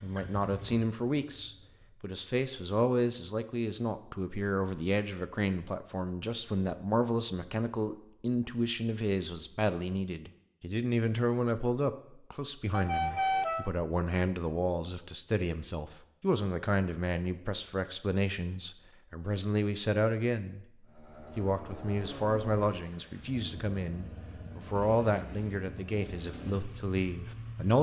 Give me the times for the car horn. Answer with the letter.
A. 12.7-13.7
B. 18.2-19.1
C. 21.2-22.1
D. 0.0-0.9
A.